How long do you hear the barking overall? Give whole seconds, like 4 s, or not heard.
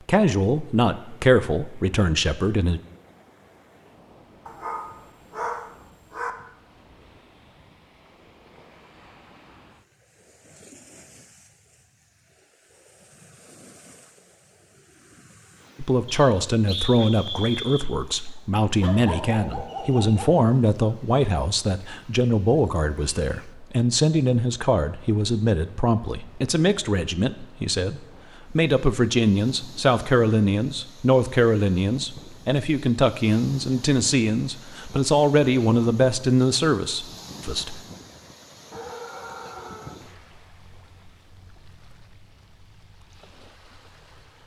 5 s.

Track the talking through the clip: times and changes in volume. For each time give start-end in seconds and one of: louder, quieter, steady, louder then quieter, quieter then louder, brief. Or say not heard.
0.1-2.8 brief
15.8-37.8 steady.